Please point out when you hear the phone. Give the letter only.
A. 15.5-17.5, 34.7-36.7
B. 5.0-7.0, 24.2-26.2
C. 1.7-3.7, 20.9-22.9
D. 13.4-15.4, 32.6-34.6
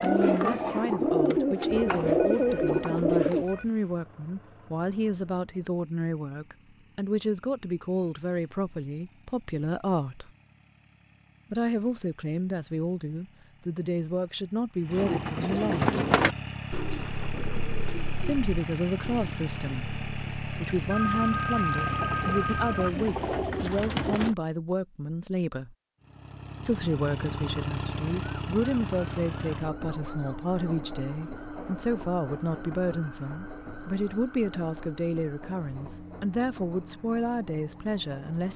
C.